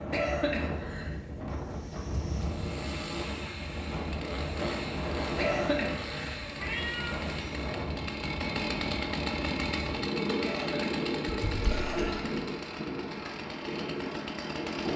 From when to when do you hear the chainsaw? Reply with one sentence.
You can hear the chainsaw from 2.4 to 14.9 s.